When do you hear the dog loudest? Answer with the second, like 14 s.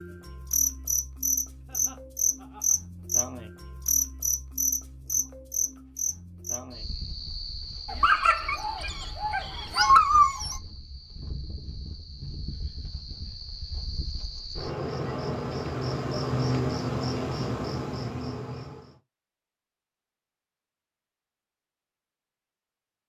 10 s.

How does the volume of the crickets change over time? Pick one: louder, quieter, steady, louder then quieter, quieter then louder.
quieter then louder.